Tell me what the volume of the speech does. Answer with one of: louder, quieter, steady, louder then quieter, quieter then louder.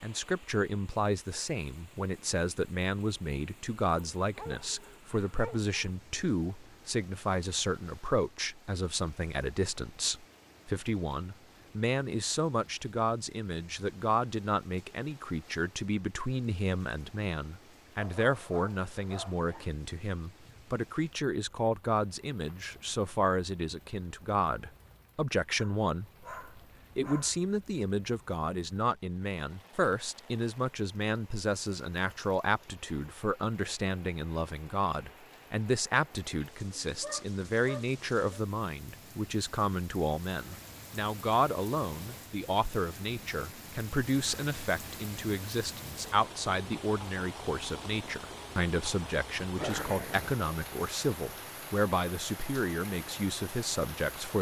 steady.